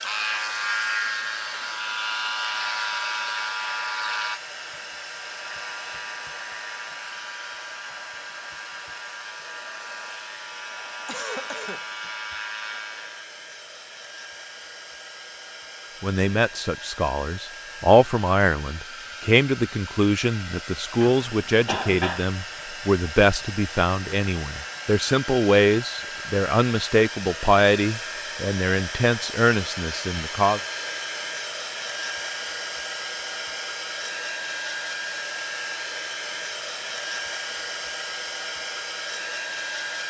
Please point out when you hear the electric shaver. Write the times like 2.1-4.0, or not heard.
0.0-13.2.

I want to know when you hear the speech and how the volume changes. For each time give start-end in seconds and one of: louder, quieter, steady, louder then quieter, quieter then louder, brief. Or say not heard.
16.0-30.6 steady.